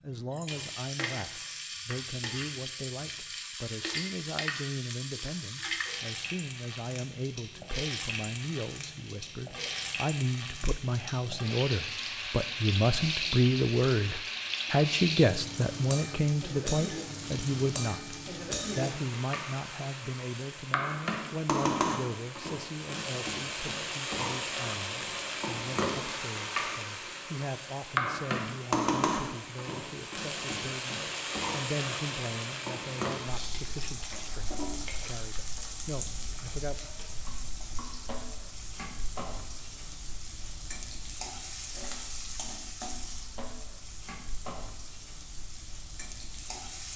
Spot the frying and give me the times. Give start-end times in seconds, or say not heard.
0.0-46.9.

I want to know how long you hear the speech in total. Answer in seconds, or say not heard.
36 s.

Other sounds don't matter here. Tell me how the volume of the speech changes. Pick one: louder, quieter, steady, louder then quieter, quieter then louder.
louder then quieter.